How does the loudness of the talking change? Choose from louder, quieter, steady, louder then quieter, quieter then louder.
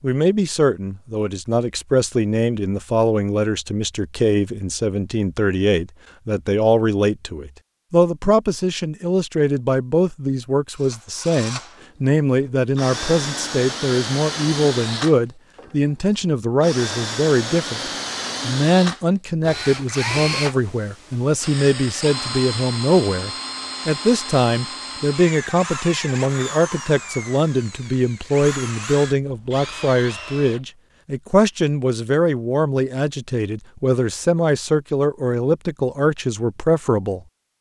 steady.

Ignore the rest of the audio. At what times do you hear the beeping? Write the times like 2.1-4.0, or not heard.
not heard.